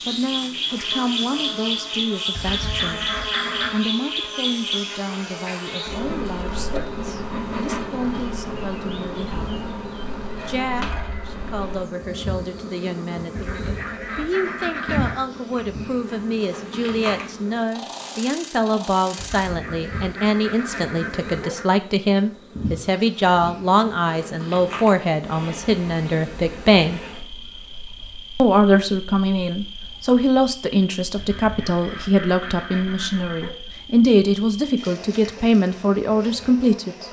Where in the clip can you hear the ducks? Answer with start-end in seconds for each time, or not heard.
2.4-3.9, 13.3-15.2, 19.1-21.6, 31.1-33.5.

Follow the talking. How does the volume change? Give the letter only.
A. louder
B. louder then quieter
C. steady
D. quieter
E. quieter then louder
A.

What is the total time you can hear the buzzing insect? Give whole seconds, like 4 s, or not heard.
37 s.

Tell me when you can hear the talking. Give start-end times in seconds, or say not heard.
0.1-9.5, 10.4-27.1, 28.4-37.0.